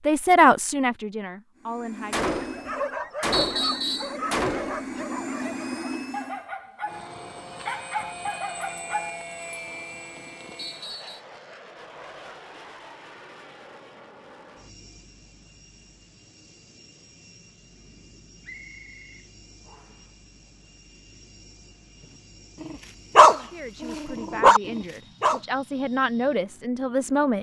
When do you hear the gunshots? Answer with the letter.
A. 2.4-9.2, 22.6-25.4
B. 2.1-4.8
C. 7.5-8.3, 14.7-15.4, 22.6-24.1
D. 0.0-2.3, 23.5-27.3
B.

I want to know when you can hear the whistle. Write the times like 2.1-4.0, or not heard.
3.3-4.2, 10.6-11.2, 18.4-19.9.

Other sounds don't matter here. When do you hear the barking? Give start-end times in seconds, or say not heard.
2.4-9.2, 22.6-25.4.